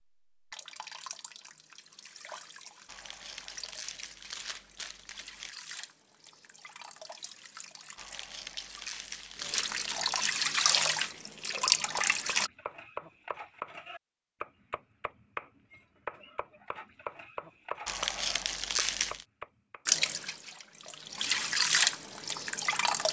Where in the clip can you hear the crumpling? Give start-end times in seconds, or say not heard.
2.9-5.5, 8.0-10.2, 17.9-19.2.